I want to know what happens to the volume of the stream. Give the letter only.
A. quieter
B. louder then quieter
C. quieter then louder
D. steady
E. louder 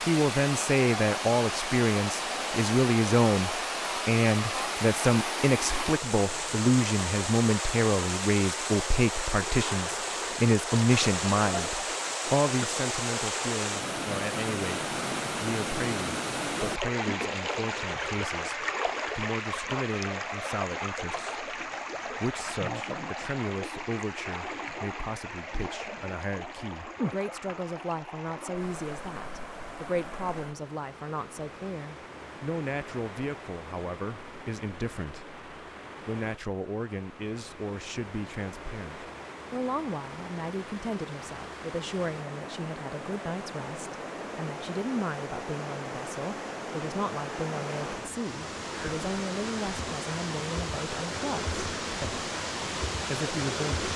C.